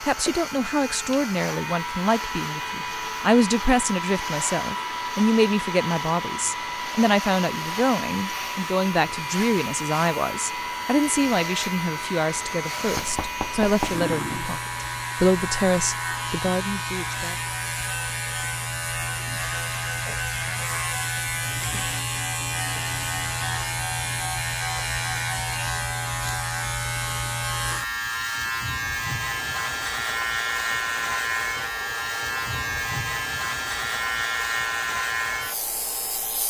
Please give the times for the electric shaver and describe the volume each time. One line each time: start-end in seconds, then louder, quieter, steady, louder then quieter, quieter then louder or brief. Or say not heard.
0.0-36.4 louder.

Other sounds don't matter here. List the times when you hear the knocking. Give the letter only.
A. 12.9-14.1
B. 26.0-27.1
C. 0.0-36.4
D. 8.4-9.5
A.